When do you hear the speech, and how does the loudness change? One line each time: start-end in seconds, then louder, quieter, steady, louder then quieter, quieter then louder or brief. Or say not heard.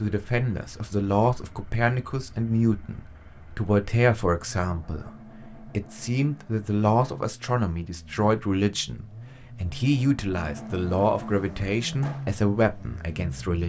0.0-13.6 steady.